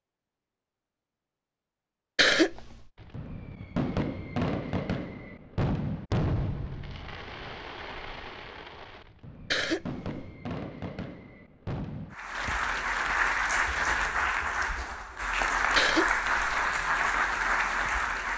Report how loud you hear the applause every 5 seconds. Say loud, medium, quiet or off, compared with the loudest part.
off, off, loud, loud.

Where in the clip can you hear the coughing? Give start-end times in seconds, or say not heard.
2.1-2.9, 9.5-10.2, 15.8-16.6.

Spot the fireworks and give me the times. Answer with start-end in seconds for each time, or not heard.
3.0-14.1.